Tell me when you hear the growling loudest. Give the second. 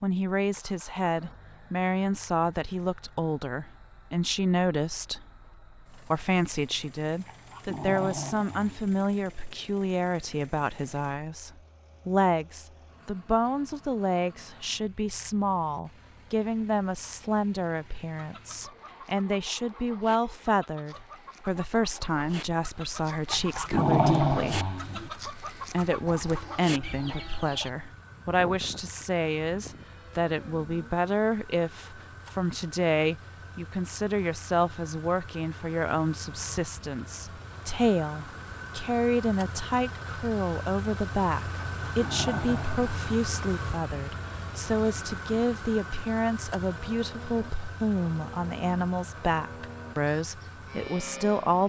24 s.